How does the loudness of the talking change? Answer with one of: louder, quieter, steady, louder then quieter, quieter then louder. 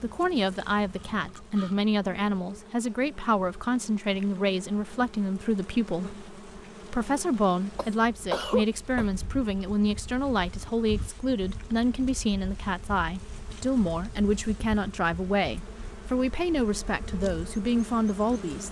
steady.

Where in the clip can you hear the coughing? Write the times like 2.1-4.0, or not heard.
7.8-9.1.